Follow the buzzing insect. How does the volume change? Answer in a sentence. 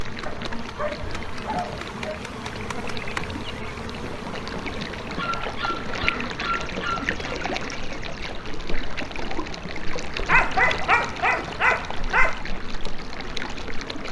The loudness of the buzzing insect goes down.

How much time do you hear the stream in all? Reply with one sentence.
The stream can be heard for 14 seconds in total.